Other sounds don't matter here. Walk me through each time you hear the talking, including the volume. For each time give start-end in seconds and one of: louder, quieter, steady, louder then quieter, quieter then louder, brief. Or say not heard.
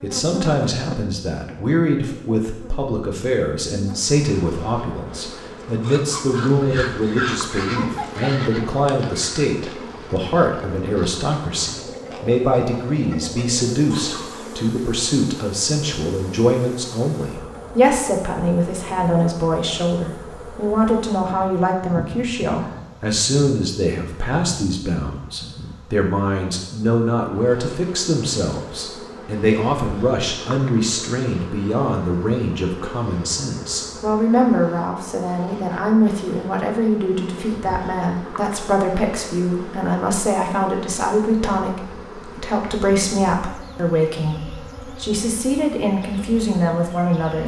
0.0-47.4 steady.